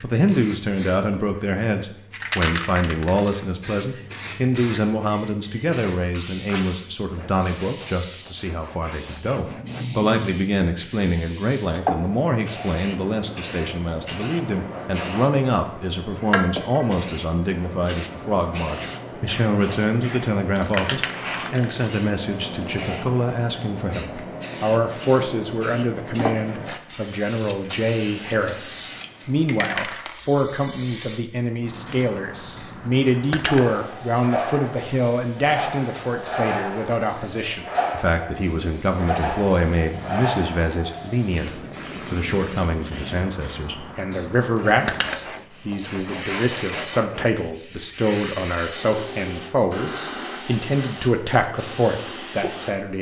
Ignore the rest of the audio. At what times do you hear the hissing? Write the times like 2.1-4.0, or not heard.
0.0-52.9.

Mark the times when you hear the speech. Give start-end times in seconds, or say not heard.
0.0-52.9.